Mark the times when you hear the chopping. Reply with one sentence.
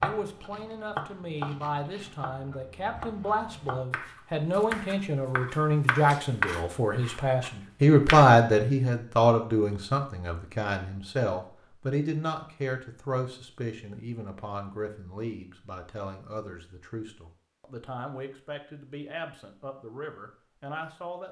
You can hear the chopping from 0.0 to 8.2 s.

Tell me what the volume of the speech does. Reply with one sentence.
The loudness of the speech goes up, then down.